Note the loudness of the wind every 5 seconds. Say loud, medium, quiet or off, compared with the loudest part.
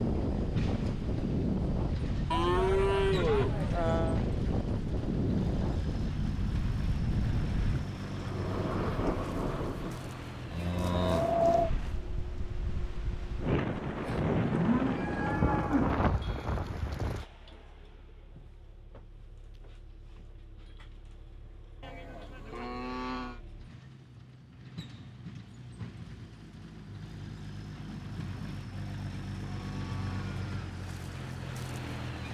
loud, loud, loud, loud, off, off, off.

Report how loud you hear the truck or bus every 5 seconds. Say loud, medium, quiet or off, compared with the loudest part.
loud, loud, medium, quiet, quiet, loud, loud.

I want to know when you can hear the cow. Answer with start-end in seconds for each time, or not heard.
2.3-4.2, 10.5-11.3, 14.5-16.0, 21.8-23.4, 28.7-30.5.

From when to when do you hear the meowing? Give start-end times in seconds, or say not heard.
not heard.